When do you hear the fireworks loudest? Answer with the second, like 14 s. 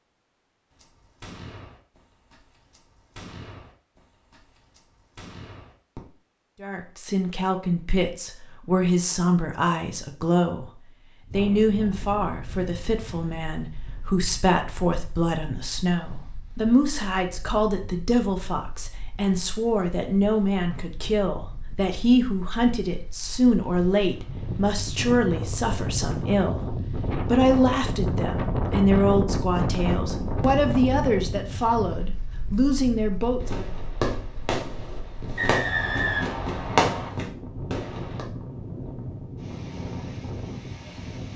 37 s.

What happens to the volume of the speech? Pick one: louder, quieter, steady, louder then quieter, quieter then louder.
steady.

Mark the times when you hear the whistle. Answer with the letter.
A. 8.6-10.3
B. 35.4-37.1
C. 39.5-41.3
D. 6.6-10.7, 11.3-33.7
B.